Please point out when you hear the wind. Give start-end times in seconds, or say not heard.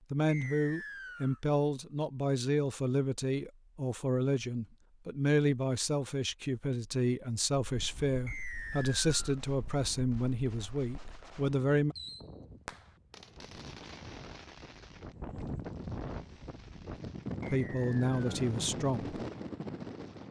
7.6-20.2.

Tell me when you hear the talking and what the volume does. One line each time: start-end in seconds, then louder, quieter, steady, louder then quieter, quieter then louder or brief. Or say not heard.
0.1-11.9 steady
17.5-19.1 brief.